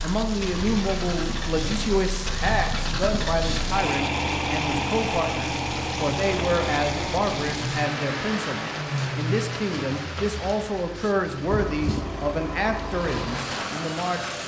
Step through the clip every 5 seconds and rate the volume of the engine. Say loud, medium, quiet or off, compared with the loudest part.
loud, loud, medium.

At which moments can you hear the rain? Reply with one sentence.
The rain can be heard from 0.0 to 14.4 s.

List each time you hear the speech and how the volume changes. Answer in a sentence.
The speech can be heard from 0.0 to 14.3 s, at a steady volume.